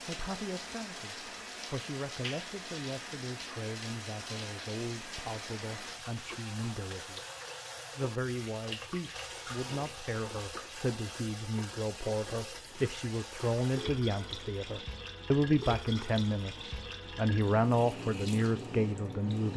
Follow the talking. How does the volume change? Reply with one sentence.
The volume of the talking goes up.